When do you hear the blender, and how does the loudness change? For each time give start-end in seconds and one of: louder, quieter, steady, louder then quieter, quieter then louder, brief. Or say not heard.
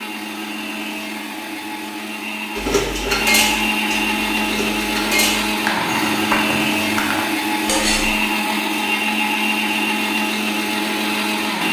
0.0-11.6 louder.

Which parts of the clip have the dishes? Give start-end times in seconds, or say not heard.
2.5-8.1.